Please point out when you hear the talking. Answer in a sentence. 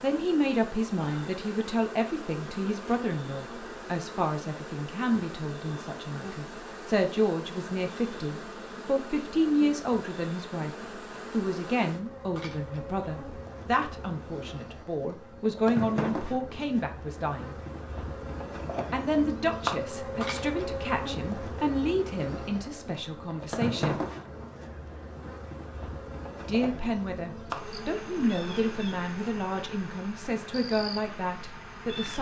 The talking can be heard from 0.0 to 17.6 s, from 18.9 to 24.0 s and from 26.4 to 32.1 s.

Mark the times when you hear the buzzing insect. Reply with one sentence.
The buzzing insect can be heard from 0.0 to 32.1 s.